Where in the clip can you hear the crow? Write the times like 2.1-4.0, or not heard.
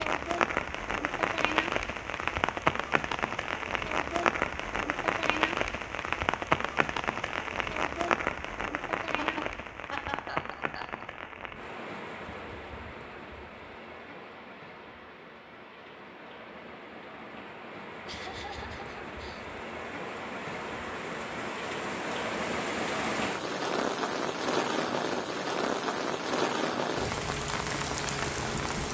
not heard.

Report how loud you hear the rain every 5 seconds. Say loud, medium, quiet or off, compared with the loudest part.
loud, loud, medium, quiet, loud, loud.